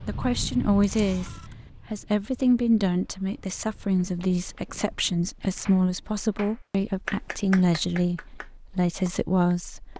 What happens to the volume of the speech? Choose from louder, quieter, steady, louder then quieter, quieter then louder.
steady.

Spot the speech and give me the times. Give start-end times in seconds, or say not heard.
0.1-9.9.